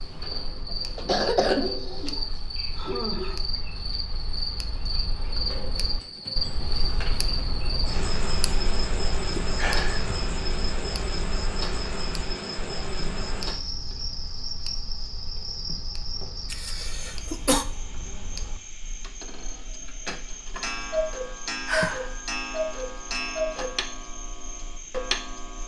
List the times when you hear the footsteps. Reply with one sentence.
The footsteps can't be heard in this clip.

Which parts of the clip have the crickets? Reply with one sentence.
You can hear the crickets from 0.0 to 25.6 s.